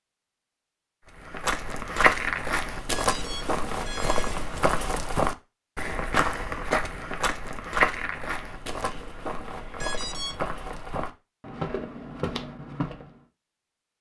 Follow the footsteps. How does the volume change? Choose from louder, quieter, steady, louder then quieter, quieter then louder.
quieter.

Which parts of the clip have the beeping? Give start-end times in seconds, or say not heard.
2.9-4.3, 9.8-10.3.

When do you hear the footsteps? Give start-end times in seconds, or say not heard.
1.1-13.2.